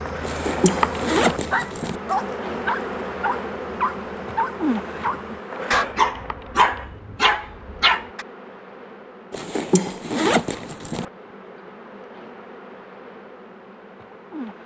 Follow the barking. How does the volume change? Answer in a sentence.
The loudness of the barking goes up.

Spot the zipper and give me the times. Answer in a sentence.
You can hear the zipper from 0.2 to 2.0 s and from 9.3 to 11.1 s.